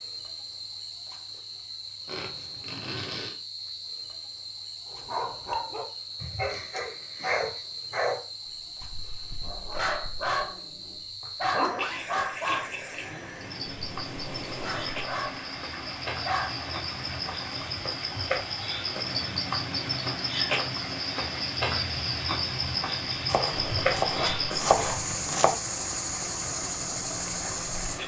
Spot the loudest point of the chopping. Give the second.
25 s.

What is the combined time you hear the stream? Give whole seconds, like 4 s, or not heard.
16 s.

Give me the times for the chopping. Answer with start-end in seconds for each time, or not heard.
23.2-25.6.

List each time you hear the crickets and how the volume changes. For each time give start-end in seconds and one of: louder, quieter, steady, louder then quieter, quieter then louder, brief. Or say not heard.
0.0-28.0 louder.